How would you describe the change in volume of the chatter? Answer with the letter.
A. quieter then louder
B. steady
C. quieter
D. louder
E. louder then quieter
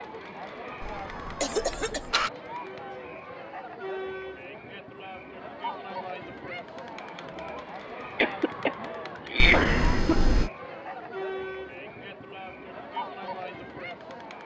B.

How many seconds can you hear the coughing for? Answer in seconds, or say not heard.
3 s.